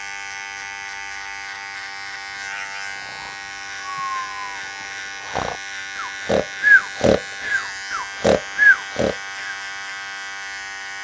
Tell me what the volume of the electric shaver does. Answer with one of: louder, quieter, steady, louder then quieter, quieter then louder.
steady.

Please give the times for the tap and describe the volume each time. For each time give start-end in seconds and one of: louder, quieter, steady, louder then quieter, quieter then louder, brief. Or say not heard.
not heard.